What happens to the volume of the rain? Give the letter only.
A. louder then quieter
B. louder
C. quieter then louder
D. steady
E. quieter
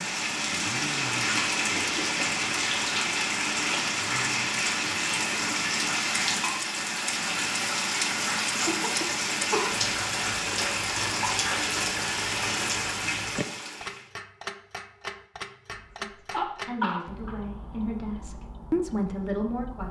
D.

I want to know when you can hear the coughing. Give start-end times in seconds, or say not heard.
1.7-2.3, 8.7-9.8, 15.7-17.4.